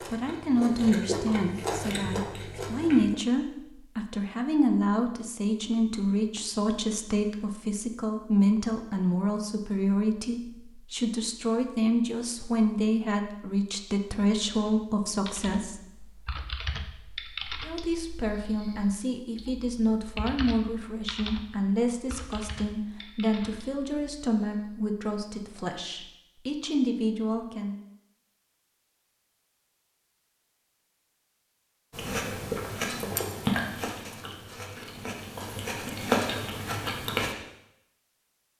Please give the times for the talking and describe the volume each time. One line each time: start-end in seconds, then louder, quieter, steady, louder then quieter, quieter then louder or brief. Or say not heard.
0.1-15.8 steady
17.6-27.8 steady.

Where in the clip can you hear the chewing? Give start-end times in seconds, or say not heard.
0.0-3.1, 31.9-37.4.